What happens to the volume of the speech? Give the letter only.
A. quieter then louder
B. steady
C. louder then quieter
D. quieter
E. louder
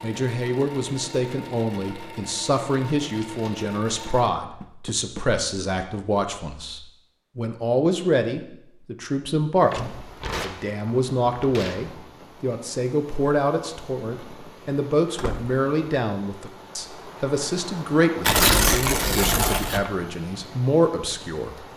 B.